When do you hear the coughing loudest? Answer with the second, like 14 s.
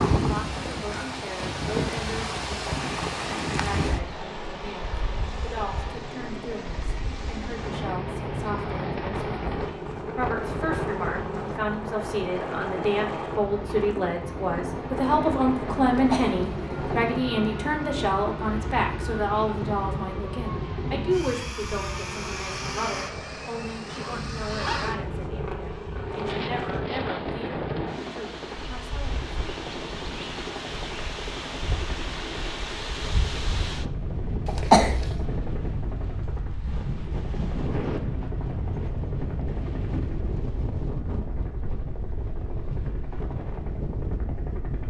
35 s.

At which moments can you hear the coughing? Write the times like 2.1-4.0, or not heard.
15.9-16.9, 34.5-35.2.